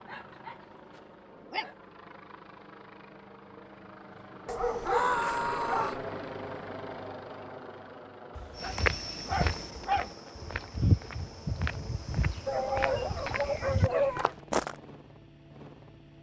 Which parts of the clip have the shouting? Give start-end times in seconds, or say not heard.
4.8-6.0.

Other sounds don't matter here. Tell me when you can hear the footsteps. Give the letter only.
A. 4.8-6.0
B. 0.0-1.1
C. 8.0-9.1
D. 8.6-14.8
D.